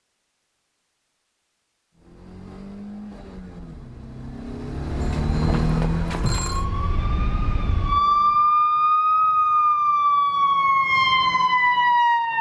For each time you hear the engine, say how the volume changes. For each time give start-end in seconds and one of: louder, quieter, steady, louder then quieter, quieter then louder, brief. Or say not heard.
1.9-8.6 louder then quieter.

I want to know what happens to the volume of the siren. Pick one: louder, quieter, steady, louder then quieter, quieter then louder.
louder.